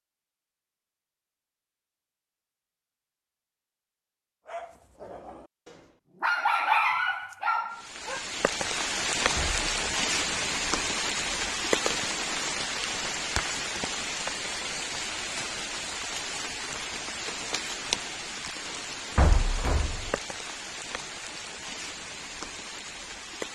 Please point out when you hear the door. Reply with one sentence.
You can hear the door from 9.3 to 9.8 s and from 19.1 to 20.2 s.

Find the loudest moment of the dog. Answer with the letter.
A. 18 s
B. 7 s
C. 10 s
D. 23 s
B.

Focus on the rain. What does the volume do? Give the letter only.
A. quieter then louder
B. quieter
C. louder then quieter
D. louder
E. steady
B.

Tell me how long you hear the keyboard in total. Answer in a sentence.
The keyboard can't be heard in this clip.